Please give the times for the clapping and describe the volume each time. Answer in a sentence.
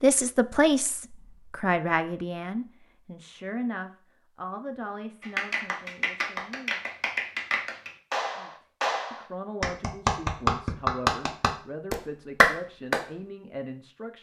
The clapping can be heard from 5.2 to 13.1 s, getting louder.